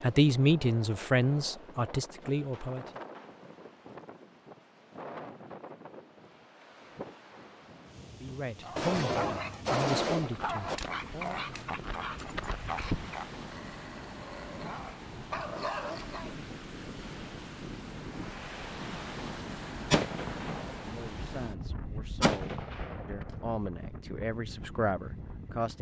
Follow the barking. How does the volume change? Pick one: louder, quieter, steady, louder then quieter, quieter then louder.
quieter then louder.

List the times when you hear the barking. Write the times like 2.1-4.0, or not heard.
8.6-16.4.